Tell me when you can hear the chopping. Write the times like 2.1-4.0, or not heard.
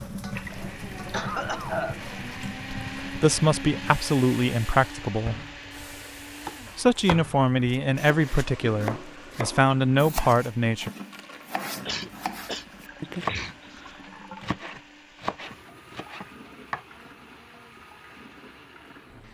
6.4-16.9.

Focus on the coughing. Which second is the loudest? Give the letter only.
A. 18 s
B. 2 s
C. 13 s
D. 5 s
B.